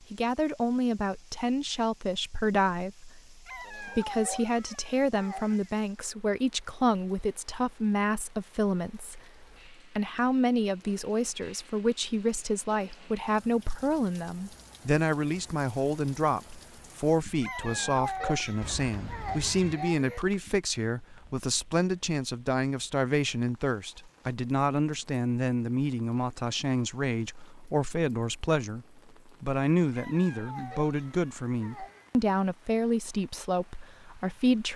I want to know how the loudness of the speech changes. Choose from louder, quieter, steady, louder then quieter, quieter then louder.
steady.